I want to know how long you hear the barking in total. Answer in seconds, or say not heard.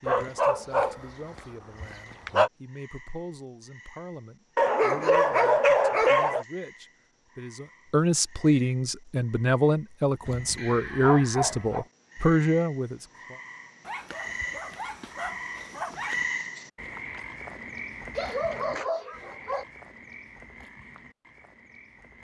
10 s.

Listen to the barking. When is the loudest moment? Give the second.
6 s.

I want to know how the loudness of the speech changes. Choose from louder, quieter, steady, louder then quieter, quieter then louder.
louder.